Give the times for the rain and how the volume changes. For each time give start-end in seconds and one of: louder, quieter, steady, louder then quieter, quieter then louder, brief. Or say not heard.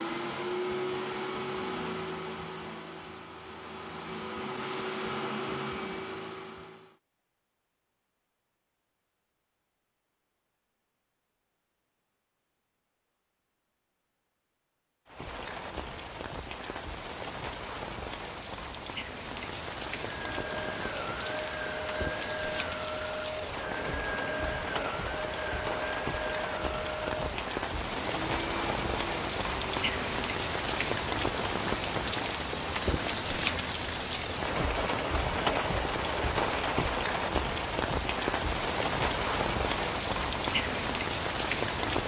15.1-42.0 louder.